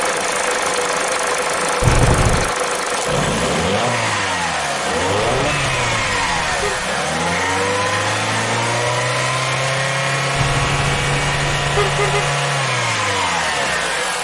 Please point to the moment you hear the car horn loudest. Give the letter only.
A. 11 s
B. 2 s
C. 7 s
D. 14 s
B.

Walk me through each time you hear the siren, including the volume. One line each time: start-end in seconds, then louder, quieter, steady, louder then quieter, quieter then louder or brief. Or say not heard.
not heard.